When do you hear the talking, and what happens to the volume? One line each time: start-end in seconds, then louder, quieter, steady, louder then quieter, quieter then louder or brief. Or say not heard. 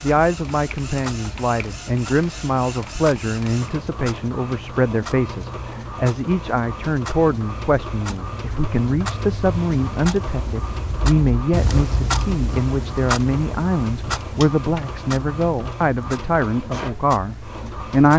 0.0-18.1 steady.